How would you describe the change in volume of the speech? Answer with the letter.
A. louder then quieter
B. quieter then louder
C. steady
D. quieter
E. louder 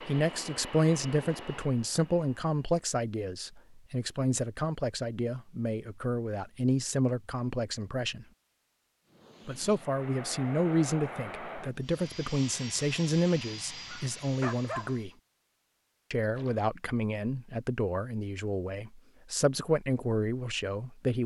C.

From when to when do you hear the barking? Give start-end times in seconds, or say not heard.
13.8-15.0.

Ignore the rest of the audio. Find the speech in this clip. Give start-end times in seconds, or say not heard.
0.0-8.2, 9.4-15.1, 16.1-21.2.